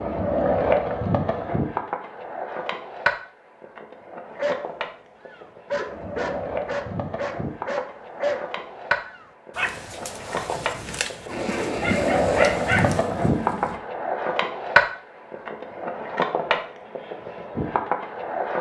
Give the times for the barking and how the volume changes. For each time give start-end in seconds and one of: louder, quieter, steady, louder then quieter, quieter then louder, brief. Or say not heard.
4.3-13.0 steady.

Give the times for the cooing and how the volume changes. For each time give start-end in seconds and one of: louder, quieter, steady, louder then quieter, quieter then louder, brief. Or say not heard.
not heard.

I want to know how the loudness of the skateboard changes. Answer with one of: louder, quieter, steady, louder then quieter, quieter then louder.
quieter then louder.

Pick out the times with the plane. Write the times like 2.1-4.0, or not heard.
11.2-13.8.